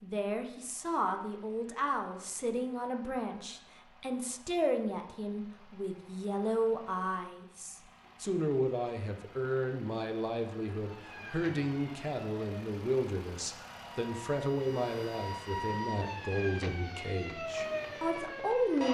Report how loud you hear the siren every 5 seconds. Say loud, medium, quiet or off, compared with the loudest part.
off, off, medium, loud.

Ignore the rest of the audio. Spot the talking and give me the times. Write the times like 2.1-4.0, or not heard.
0.0-18.8.